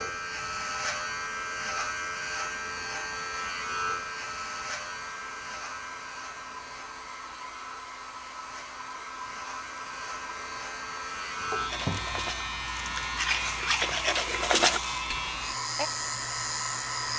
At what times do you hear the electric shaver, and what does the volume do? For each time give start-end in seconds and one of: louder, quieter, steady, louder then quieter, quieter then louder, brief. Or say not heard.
0.0-17.1 quieter then louder.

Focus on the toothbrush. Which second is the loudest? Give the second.
15 s.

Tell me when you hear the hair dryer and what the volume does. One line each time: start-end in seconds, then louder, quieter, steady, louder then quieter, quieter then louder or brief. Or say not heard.
0.2-17.1 louder.